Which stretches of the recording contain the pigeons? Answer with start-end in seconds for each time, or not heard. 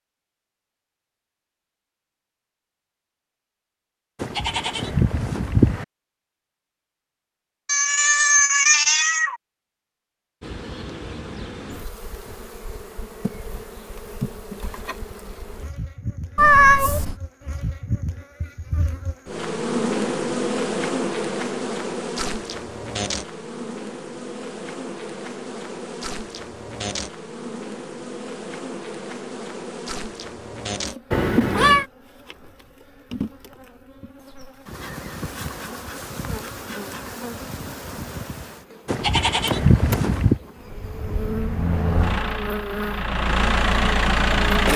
not heard.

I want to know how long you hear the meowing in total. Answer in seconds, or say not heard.
3 s.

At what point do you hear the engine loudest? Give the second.
44 s.